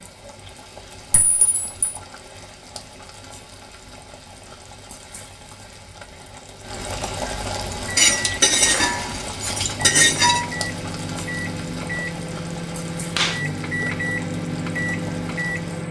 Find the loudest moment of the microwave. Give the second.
14 s.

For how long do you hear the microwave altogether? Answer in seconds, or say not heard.
8 s.